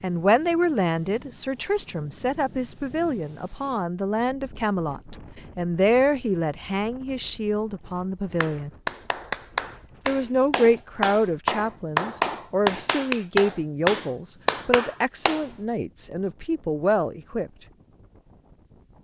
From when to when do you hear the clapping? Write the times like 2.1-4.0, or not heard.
8.4-15.5.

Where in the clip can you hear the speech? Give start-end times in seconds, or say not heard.
0.0-8.7, 10.1-17.5.